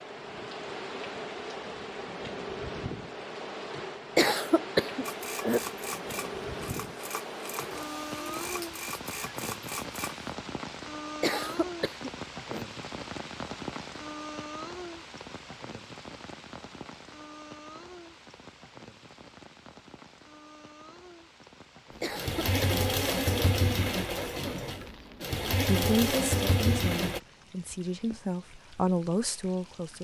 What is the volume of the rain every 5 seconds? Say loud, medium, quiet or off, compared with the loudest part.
loud, loud, loud, medium, quiet, quiet.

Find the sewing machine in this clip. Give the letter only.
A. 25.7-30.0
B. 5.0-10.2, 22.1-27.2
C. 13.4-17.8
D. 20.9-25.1
B.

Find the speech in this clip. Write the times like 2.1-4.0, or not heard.
25.7-30.0.